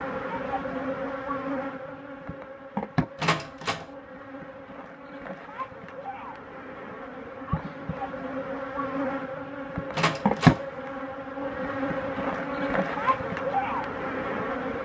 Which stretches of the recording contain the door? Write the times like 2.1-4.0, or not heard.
3.1-3.9, 9.9-10.6.